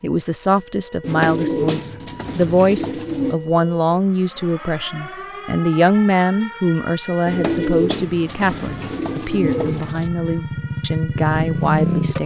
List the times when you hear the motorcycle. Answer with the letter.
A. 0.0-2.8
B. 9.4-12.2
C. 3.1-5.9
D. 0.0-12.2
B.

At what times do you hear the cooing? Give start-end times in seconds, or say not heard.
1.0-3.4, 7.2-10.1.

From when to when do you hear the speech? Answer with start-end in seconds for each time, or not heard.
0.0-12.2.